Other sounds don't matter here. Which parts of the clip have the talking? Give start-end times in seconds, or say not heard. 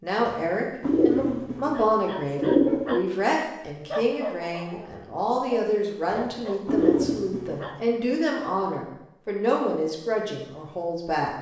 0.0-11.3.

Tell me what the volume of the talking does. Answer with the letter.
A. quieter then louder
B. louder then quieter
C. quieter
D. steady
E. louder
D.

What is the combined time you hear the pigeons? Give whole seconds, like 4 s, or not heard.
4 s.